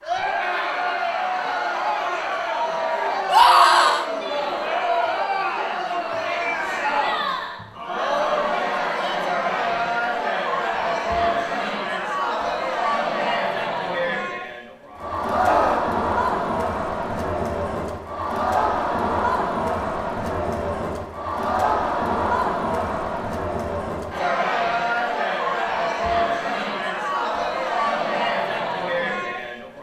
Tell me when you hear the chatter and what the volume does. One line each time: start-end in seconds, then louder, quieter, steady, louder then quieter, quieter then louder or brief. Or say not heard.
0.0-29.7 steady.